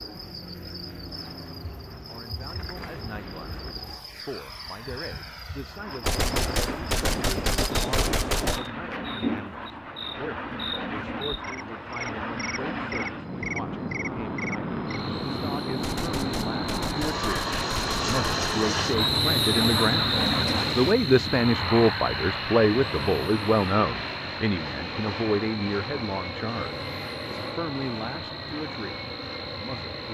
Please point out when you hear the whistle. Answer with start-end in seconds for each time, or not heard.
18.9-20.9.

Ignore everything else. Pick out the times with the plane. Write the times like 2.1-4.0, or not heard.
0.0-30.0.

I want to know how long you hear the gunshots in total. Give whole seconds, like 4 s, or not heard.
5 s.